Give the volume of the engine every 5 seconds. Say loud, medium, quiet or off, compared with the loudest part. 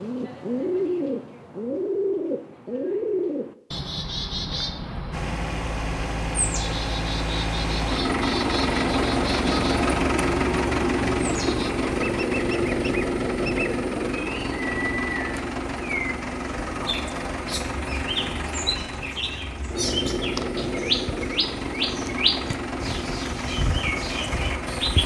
off, loud, loud, medium, medium.